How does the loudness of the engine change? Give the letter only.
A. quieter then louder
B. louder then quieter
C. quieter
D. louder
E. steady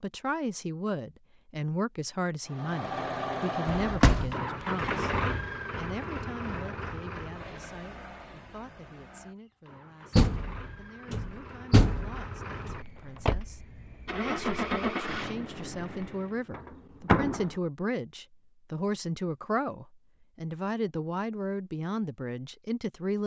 A.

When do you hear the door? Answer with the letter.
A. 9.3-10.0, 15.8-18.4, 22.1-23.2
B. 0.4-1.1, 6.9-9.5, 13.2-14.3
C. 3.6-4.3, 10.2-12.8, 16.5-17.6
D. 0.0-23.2
C.